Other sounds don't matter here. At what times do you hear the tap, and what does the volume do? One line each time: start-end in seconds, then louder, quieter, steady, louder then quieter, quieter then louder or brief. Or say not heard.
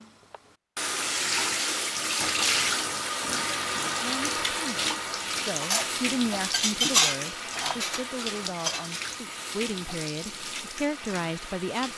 0.0-11.9 quieter.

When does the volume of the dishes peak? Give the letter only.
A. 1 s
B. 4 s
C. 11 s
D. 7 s
D.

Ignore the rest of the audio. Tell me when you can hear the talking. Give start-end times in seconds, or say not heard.
4.0-11.9.